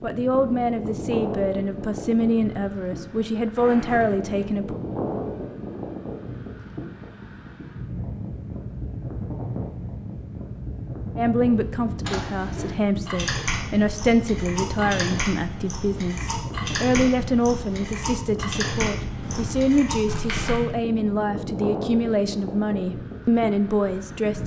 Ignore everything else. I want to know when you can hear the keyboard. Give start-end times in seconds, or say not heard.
12.1-20.6.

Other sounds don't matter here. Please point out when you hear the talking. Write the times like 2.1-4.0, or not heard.
0.0-4.8, 11.2-24.4.